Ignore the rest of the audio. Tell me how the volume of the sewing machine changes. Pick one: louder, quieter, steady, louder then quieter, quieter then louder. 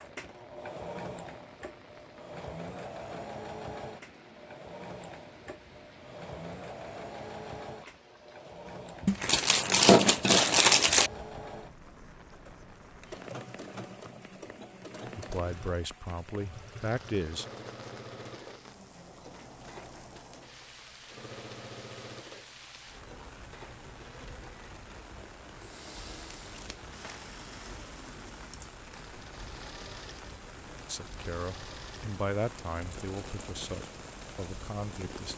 quieter.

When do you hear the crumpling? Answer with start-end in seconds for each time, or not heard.
9.1-11.1, 26.4-27.2.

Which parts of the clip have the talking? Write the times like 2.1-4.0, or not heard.
15.2-17.4, 30.9-35.3.